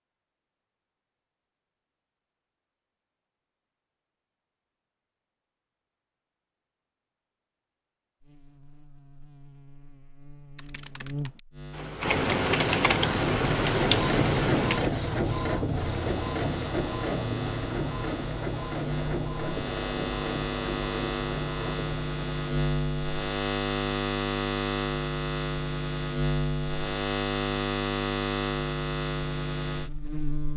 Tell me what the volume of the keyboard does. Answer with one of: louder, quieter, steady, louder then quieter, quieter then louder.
louder.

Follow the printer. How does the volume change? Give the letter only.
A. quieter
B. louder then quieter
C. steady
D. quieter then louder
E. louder
A.